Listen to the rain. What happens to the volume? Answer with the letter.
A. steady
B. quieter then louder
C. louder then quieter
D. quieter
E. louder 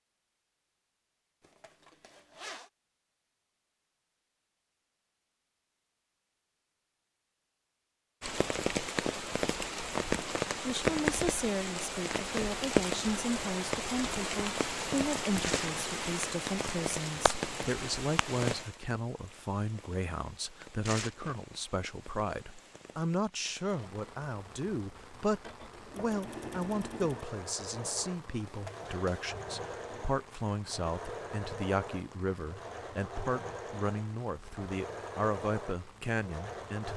D.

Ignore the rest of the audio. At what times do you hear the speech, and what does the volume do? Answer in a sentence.
You can hear the speech from 10.7 to 36.9 s, at a steady volume.